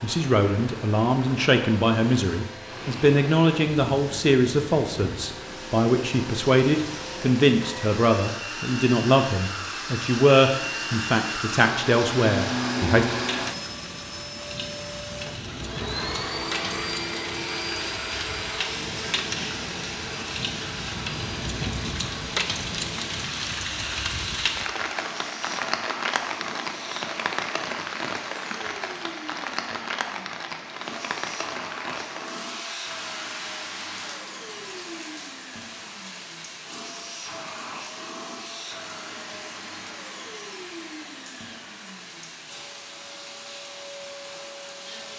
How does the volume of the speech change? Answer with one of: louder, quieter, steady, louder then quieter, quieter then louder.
steady.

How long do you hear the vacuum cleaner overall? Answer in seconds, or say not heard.
45 s.